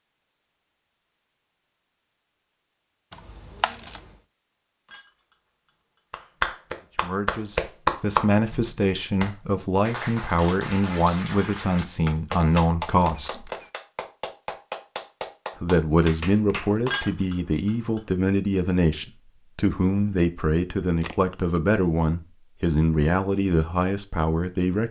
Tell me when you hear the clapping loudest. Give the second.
8 s.